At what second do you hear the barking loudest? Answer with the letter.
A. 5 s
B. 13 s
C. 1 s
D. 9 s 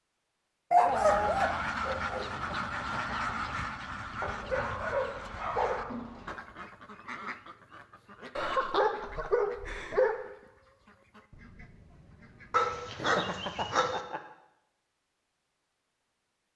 C.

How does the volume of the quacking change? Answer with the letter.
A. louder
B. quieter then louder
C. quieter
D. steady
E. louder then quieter
C.